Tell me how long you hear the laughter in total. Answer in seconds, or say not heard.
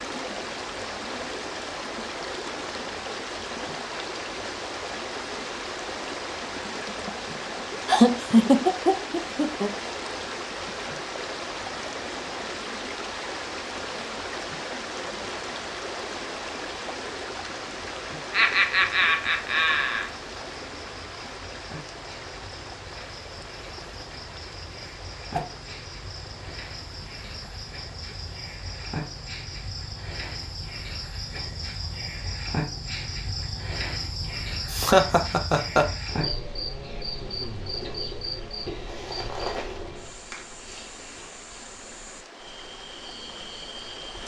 5 s.